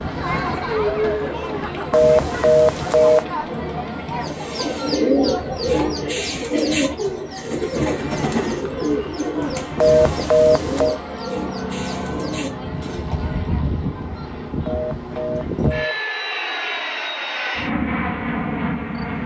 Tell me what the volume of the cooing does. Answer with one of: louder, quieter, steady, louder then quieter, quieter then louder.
quieter.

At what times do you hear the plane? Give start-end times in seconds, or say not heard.
0.0-19.2.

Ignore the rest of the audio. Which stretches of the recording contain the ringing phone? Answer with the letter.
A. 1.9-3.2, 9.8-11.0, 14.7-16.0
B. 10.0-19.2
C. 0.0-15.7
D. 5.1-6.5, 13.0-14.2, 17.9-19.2
A.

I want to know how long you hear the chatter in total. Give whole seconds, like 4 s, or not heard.
16 s.